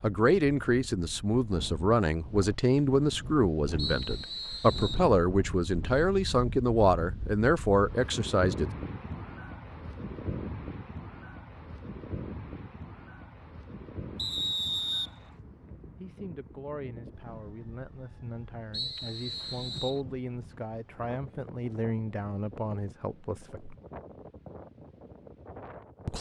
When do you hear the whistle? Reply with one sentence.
You can hear the whistle from 3.8 to 5.0 s, from 14.2 to 15.1 s and from 18.7 to 20.0 s.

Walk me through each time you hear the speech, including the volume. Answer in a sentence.
You can hear the speech from 0.0 to 8.7 s, at a steady volume; and from 16.0 to 23.8 s, getting louder.